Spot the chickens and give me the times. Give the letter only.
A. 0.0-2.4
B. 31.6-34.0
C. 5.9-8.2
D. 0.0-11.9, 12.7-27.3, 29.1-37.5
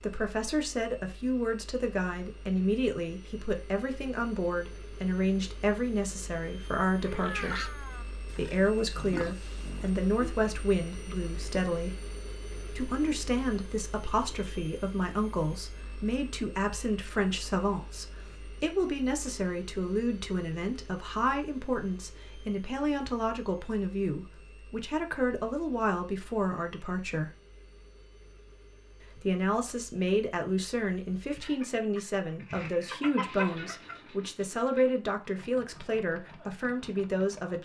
B.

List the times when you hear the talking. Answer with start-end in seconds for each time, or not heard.
0.0-11.9, 12.7-27.3, 29.1-37.5.